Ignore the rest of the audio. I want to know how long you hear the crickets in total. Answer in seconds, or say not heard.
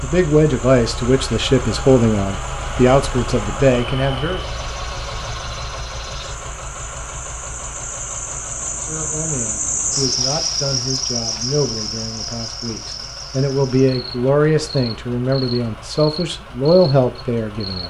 18 s.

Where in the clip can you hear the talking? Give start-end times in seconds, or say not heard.
0.0-4.5, 8.8-17.8.